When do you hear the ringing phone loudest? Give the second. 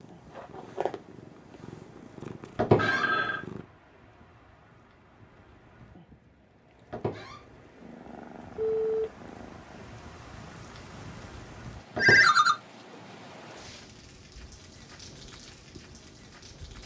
12 s.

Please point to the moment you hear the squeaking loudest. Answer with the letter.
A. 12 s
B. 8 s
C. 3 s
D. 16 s
C.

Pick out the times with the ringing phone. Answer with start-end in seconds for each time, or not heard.
2.8-3.4, 8.6-9.1, 11.9-12.6.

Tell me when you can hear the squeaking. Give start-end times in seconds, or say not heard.
2.5-3.0, 6.9-7.4, 11.9-12.4.